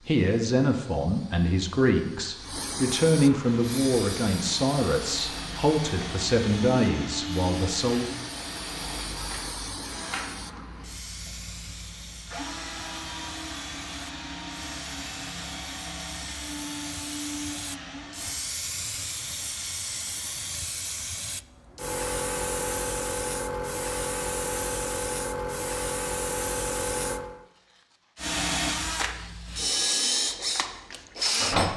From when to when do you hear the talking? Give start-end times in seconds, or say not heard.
0.1-8.1.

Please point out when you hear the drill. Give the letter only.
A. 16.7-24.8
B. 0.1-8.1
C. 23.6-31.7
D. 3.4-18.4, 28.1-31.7
D.